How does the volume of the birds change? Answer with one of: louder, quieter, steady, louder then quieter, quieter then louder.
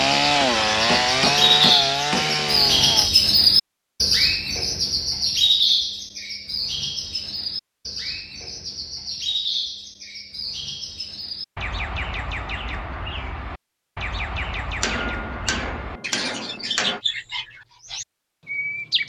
quieter.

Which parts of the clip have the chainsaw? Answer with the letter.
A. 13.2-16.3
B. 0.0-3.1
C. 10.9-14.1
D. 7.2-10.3
B.